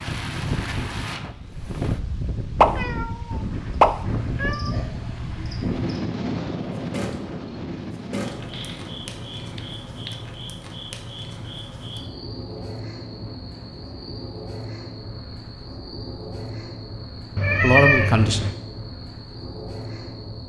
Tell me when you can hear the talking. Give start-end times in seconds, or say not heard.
17.6-18.5.